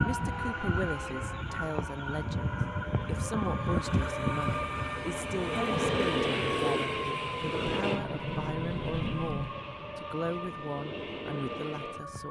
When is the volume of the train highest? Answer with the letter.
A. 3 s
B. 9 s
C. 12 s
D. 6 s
D.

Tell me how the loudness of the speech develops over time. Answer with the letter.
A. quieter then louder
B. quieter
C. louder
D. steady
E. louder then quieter
D.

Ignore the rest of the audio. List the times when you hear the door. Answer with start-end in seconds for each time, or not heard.
7.9-9.6.